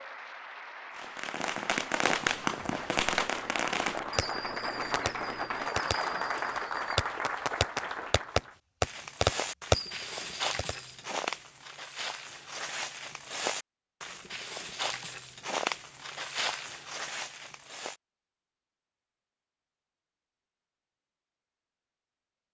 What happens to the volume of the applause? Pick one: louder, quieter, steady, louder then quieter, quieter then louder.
louder.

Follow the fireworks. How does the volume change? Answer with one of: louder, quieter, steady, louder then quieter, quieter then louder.
quieter then louder.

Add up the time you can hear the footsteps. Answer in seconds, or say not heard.
9 s.